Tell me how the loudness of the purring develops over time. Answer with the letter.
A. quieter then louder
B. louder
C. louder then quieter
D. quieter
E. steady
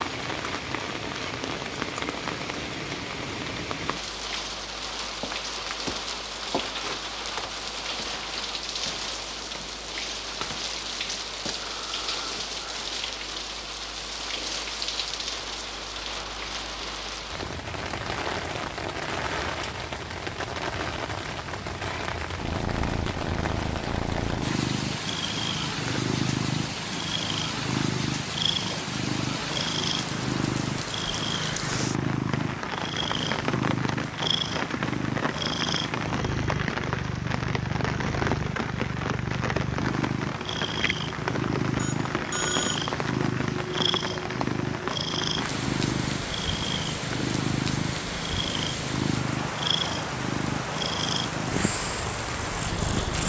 E.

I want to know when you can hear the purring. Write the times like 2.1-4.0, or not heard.
22.4-53.2.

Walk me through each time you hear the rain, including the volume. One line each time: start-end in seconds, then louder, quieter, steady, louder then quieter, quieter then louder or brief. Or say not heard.
0.0-53.2 steady.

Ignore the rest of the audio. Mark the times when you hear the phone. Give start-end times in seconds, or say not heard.
41.8-42.8.